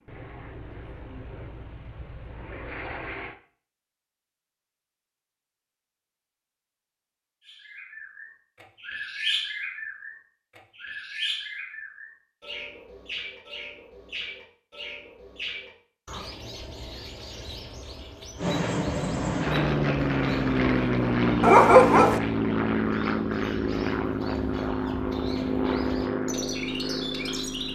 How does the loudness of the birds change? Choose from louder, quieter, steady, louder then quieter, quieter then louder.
quieter then louder.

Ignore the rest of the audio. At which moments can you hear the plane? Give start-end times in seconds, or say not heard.
0.1-3.4, 18.4-27.7.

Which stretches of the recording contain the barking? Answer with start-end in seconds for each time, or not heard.
21.4-22.2.